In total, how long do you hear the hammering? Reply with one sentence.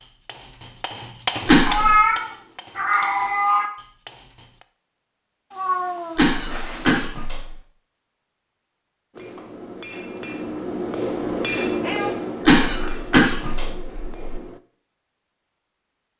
The hammering can be heard for 10 seconds in total.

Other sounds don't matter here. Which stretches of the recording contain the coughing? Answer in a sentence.
You can hear the coughing from 1.4 to 2.0 s, from 6.2 to 7.5 s and from 12.4 to 14.4 s.